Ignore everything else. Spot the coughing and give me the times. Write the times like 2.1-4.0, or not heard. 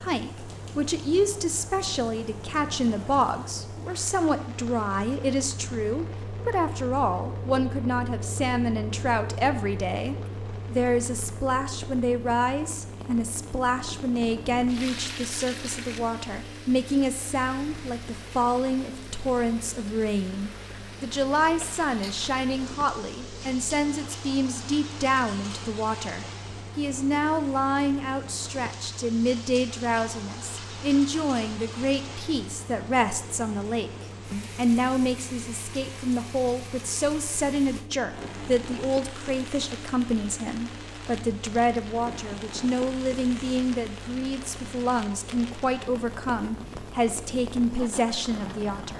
not heard.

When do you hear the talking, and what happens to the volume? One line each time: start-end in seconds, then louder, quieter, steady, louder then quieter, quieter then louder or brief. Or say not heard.
0.0-48.9 steady.